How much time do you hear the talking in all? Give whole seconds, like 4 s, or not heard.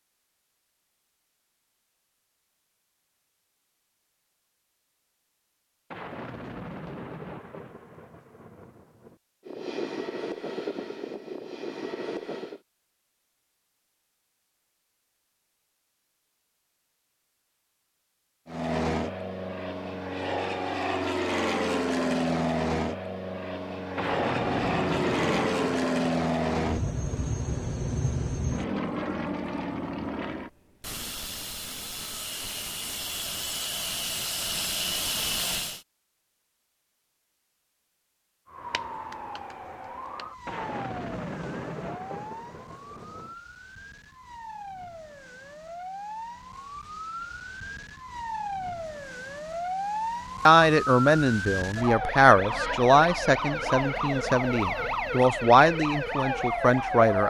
7 s.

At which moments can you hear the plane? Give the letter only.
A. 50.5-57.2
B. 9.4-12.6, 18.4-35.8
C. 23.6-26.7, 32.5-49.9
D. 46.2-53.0
B.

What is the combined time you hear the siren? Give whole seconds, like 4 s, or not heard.
19 s.